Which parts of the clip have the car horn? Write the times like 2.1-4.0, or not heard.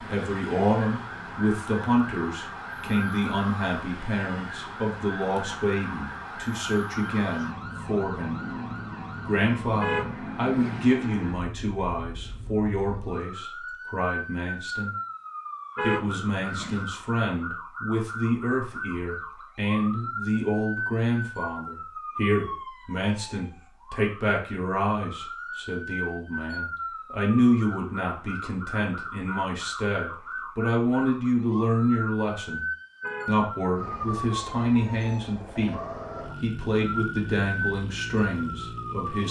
9.8-11.0, 15.8-16.9, 33.0-34.2.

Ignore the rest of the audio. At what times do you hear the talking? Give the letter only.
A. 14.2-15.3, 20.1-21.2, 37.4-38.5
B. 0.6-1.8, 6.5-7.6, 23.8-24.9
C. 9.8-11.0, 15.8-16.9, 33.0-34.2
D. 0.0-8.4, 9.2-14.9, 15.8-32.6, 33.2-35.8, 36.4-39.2
D.